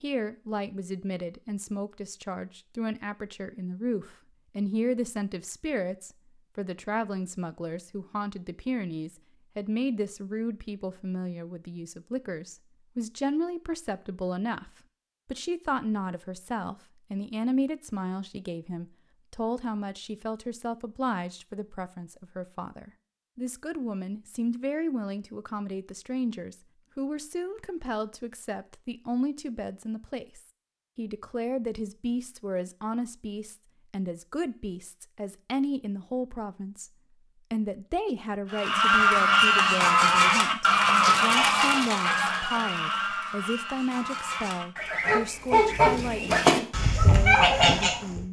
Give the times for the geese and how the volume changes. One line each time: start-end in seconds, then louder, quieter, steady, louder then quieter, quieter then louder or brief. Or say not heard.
38.5-48.2 quieter then louder.